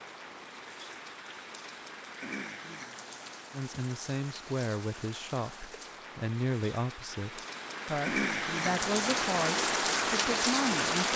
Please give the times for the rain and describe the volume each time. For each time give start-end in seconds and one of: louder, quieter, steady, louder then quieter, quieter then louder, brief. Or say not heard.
0.0-11.1 louder.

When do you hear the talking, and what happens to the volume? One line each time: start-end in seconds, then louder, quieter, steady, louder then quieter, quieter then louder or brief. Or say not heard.
3.5-11.1 steady.